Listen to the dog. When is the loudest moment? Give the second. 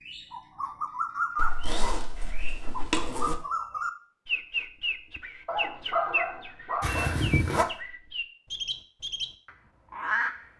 6 s.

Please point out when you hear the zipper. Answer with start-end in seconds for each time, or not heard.
1.4-3.4, 6.8-7.7.